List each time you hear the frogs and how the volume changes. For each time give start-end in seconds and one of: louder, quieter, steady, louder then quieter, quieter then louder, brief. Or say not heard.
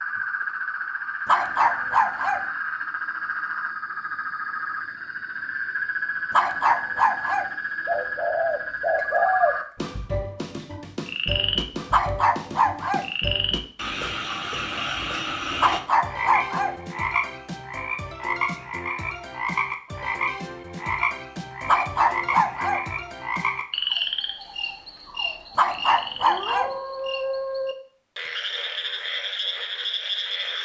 0.0-30.5 steady.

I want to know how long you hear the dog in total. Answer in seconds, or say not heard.
7 s.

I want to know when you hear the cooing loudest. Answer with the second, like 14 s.
9 s.